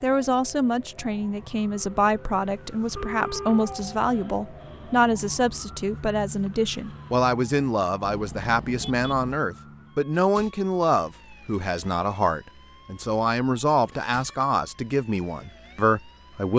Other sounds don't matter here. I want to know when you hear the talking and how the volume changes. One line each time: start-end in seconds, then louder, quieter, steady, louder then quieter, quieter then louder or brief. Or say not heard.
0.0-16.5 steady.